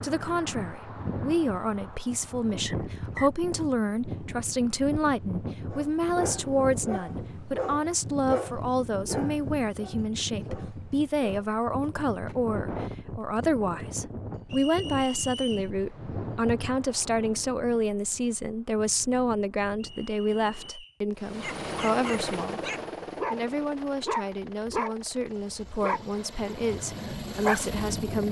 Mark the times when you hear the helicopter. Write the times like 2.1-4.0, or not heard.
21.1-28.2.